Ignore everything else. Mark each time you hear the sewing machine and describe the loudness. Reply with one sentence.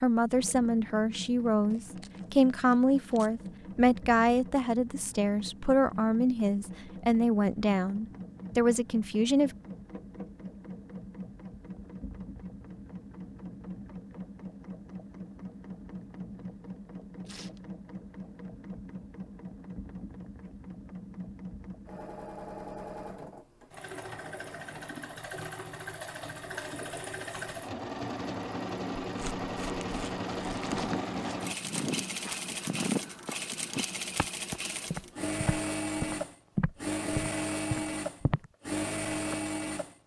You can hear the sewing machine from 0.1 to 40.0 s, getting louder.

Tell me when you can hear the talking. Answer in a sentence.
You can hear the talking from 0.0 to 9.6 s.